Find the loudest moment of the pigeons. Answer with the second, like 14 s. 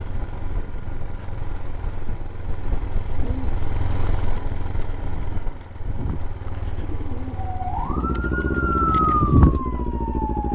9 s.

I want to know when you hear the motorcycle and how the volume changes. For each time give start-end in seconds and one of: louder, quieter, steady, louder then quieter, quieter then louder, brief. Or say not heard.
0.0-10.5 louder.